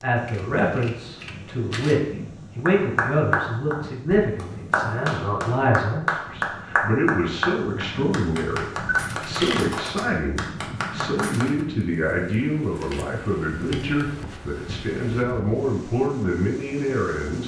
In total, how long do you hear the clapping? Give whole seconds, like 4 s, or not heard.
9 s.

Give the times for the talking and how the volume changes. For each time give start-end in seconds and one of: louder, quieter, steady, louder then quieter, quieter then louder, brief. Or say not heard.
0.0-17.4 steady.